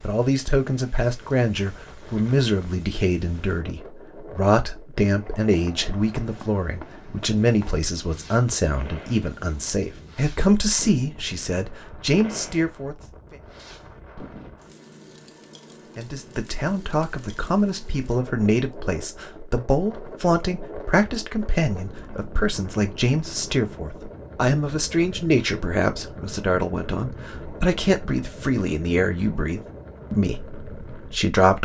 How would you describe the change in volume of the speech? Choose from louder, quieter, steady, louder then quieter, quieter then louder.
steady.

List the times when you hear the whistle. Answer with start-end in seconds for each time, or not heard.
not heard.